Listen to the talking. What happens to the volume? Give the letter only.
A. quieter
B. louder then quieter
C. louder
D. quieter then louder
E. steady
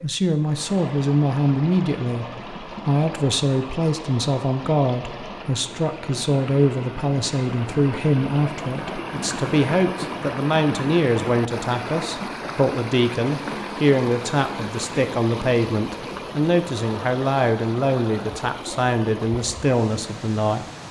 E.